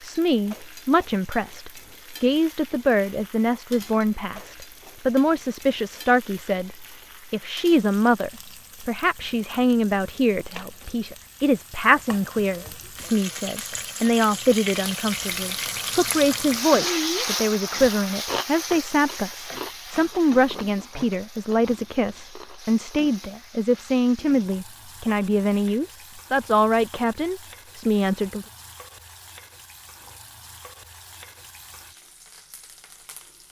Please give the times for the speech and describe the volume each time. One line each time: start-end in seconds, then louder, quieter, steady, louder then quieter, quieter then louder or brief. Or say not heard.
0.0-28.4 steady.